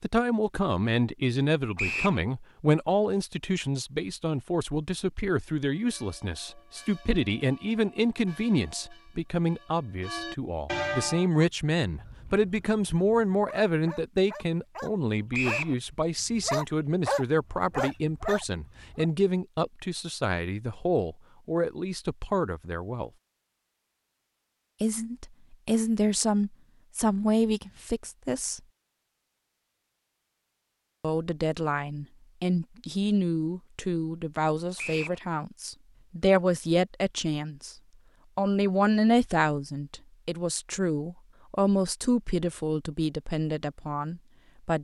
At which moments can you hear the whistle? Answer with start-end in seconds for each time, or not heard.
1.8-2.2, 15.3-15.8, 34.8-35.2.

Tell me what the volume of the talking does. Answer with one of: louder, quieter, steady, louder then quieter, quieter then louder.
steady.